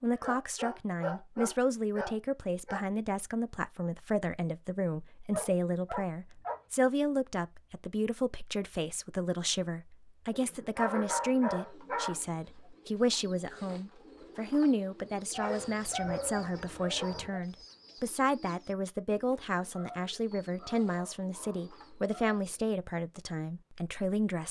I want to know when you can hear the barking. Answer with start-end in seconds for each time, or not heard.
0.1-2.9, 5.3-6.6, 10.3-12.2, 15.3-17.4, 19.7-22.4.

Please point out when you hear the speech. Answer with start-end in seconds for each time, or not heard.
0.0-24.4.